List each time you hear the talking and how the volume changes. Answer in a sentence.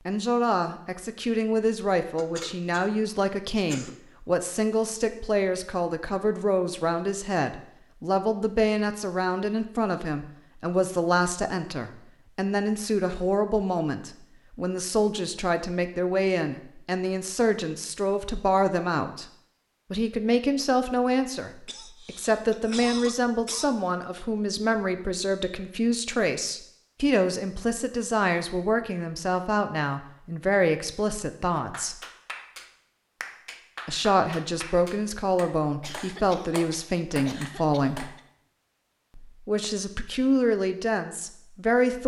You can hear the talking from 0.1 to 19.3 s, at a steady volume; from 19.9 to 32.0 s, at a steady volume; from 33.9 to 38.1 s, at a steady volume; and briefly from 39.1 to 42.0 s.